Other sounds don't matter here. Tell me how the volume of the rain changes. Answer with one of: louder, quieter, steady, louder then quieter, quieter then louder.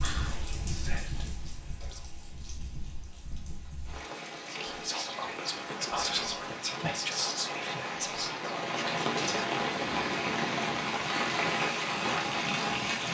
louder.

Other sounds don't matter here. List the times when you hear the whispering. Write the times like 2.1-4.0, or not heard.
0.0-2.0, 4.5-9.5.